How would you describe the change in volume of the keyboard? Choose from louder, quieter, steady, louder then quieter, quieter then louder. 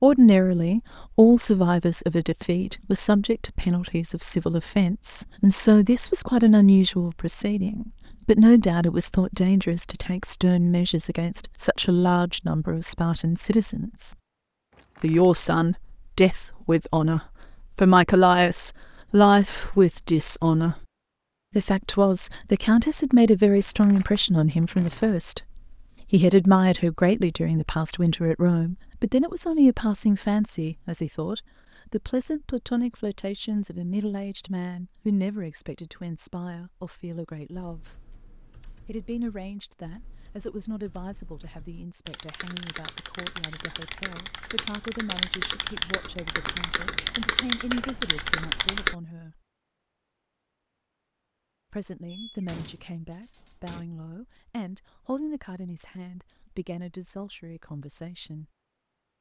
louder.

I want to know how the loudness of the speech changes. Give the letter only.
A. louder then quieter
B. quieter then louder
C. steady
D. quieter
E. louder
D.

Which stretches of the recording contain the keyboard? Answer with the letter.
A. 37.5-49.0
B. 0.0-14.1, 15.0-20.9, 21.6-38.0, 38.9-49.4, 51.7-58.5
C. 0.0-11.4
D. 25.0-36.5
A.